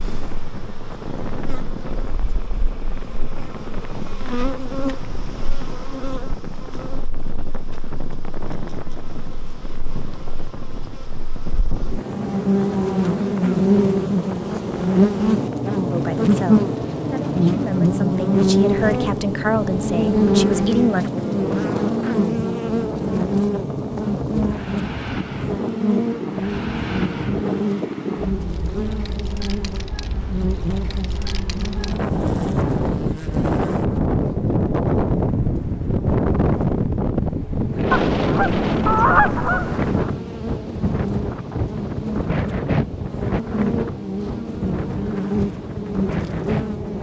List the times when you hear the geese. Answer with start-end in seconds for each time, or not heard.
37.9-40.1.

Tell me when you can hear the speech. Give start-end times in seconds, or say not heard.
15.9-21.1.